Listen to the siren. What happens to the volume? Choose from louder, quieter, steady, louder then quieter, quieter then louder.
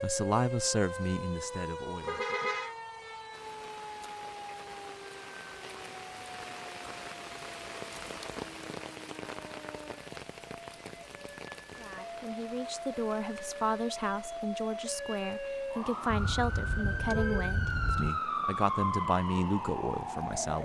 quieter then louder.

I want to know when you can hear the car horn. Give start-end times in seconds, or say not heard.
2.0-2.8, 16.1-18.1.